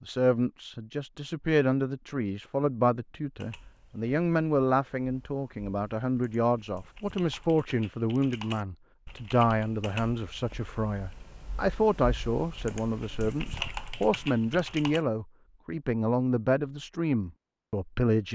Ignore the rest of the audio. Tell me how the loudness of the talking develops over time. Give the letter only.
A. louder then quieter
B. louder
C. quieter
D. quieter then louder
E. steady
E.